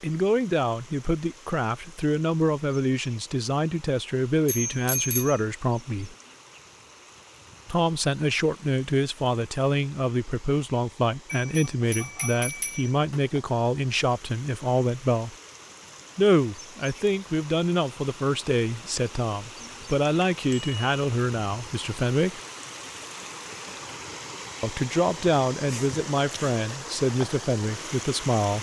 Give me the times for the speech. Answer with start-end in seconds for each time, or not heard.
0.0-6.2, 7.7-15.3, 16.1-22.4, 24.6-28.5.